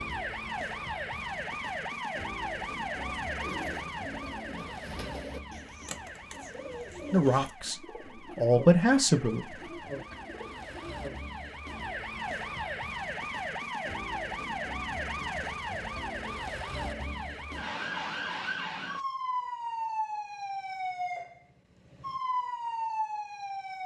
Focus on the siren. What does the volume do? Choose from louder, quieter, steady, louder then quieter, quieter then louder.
quieter then louder.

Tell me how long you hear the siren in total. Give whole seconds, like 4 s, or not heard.
24 s.